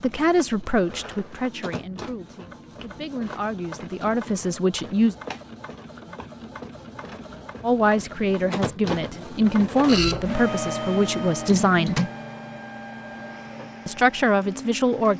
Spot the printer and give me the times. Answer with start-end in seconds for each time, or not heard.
0.0-15.1.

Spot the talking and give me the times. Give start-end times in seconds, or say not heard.
0.0-5.2, 7.6-12.1, 13.8-15.1.